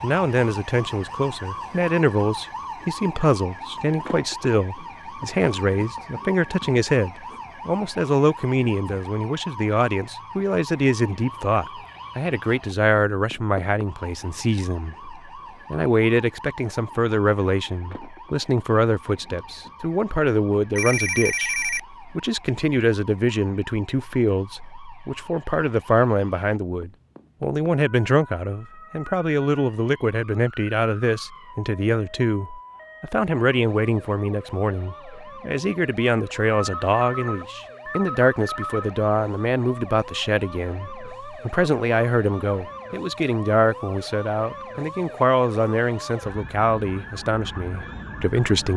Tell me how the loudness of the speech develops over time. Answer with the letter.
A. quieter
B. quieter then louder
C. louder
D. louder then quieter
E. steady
E.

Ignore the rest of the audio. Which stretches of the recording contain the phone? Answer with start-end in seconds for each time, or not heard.
20.8-21.8, 36.5-38.9.